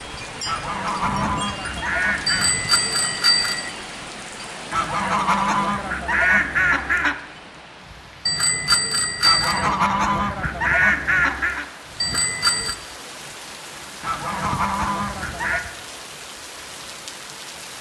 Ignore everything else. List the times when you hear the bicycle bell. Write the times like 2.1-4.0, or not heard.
2.2-3.7, 8.2-9.7, 12.0-12.8.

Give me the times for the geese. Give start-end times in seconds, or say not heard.
0.5-2.5, 4.7-7.2, 9.2-11.7, 14.0-15.6.